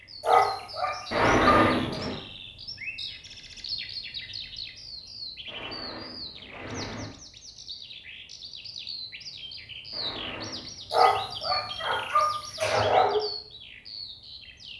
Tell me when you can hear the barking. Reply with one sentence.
You can hear the barking from 0.2 to 2.0 s and from 10.9 to 13.2 s.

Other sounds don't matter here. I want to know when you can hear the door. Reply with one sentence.
You can hear the door from 1.1 to 2.2 s, from 5.5 to 7.1 s and from 9.9 to 10.8 s.